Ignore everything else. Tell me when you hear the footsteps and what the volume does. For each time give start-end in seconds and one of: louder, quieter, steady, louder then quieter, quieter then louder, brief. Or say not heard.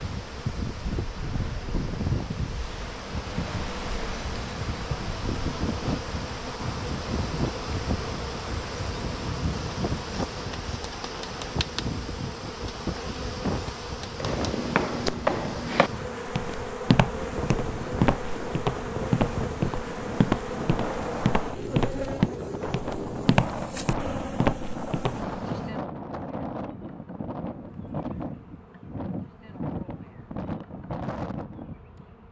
14.2-25.6 steady.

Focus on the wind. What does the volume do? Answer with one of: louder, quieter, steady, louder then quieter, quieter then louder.
steady.